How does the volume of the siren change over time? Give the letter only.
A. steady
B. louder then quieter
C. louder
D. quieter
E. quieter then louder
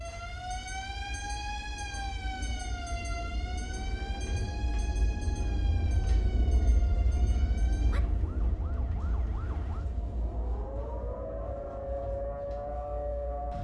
E.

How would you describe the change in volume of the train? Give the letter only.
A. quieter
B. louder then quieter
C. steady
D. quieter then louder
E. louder
B.